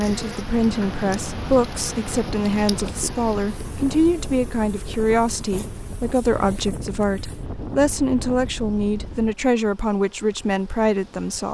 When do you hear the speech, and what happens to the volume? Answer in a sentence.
The speech can be heard from 0.0 to 11.4 s, at a steady volume.